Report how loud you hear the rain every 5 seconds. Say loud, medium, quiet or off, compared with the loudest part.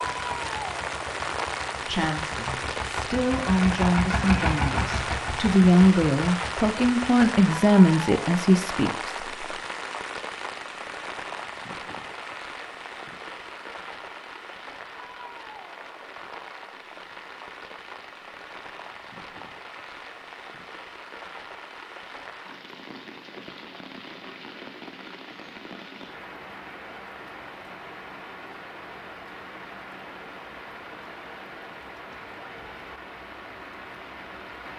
loud, loud, medium, medium, medium, medium, medium.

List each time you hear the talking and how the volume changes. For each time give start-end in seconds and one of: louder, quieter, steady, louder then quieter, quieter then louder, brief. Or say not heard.
1.9-9.4 louder.